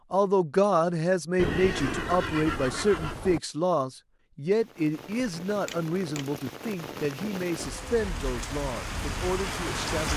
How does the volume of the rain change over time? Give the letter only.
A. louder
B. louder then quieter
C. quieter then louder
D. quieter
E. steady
A.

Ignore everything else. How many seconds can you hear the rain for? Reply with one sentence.
The rain can be heard for 6 seconds in total.